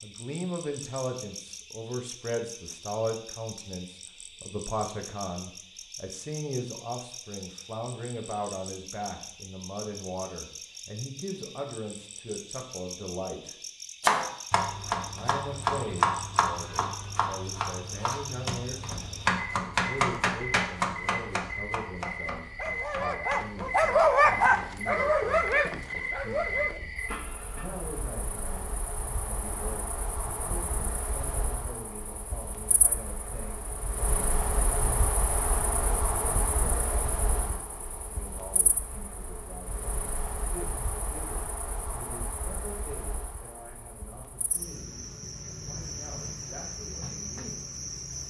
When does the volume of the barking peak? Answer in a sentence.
The volume of the barking peaks at 24 seconds.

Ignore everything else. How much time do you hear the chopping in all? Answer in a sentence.
You can hear the chopping for 12 seconds altogether.